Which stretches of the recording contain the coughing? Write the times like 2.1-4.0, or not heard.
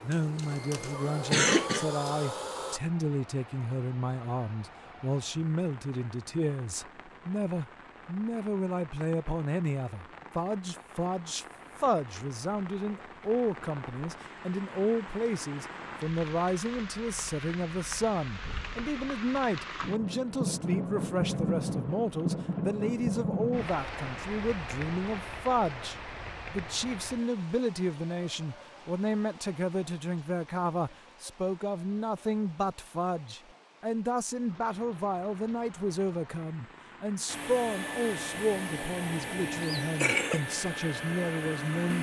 0.1-1.9, 39.5-40.4.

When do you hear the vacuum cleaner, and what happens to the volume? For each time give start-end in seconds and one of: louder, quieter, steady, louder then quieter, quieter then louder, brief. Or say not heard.
0.0-2.8 brief
37.2-41.9 steady.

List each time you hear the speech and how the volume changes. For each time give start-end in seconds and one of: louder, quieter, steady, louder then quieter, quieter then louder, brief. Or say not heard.
0.0-41.9 steady.